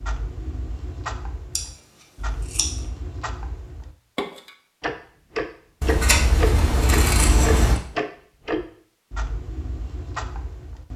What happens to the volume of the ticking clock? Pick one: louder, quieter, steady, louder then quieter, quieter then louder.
louder then quieter.